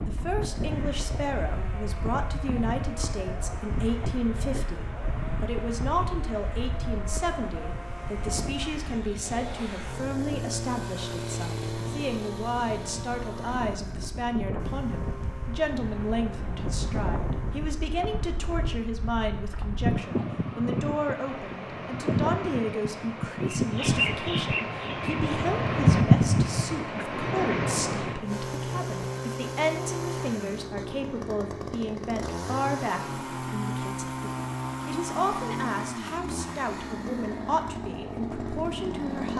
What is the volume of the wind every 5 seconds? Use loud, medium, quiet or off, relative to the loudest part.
quiet, quiet, quiet, medium, medium, loud, off, off.